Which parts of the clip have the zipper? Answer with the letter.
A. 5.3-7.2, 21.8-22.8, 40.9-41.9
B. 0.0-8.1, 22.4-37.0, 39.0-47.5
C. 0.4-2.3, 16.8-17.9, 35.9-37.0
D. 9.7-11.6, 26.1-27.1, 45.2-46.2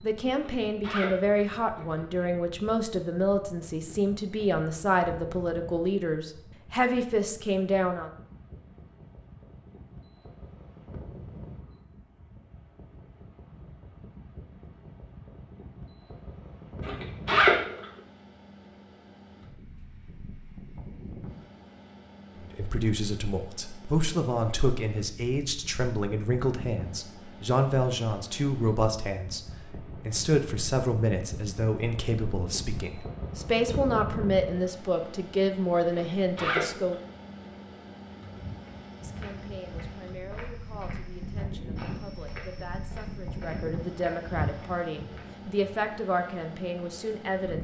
C.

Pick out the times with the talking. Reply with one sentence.
You can hear the talking from 0.0 to 8.1 s, from 22.4 to 37.0 s and from 39.0 to 47.5 s.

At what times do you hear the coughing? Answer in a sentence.
The coughing can't be heard in this clip.